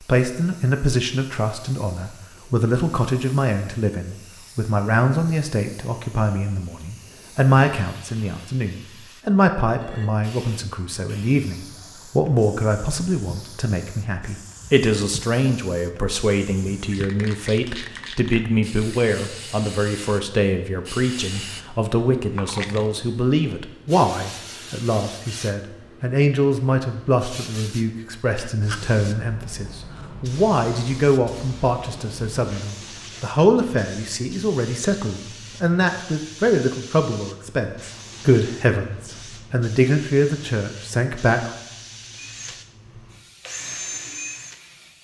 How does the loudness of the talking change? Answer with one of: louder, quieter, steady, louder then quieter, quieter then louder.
steady.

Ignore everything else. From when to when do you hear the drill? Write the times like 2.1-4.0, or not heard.
42.1-44.6.